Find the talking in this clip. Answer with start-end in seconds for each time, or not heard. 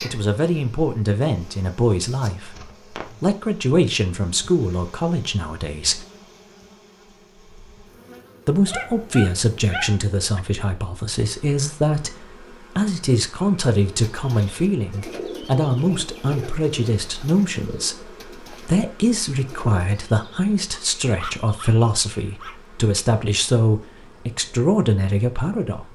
0.0-6.0, 8.4-25.9.